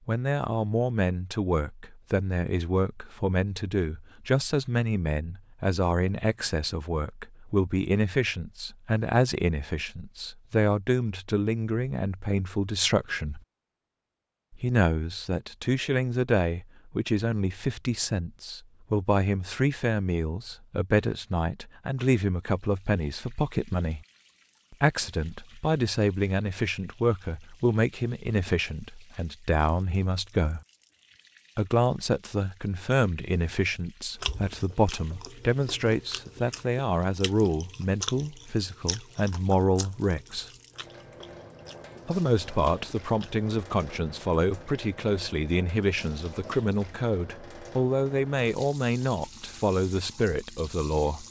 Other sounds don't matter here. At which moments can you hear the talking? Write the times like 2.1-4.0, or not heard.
0.1-13.4, 14.5-24.0, 24.7-30.6, 31.6-40.5, 42.0-51.2.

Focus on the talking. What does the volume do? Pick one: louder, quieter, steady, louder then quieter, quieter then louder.
steady.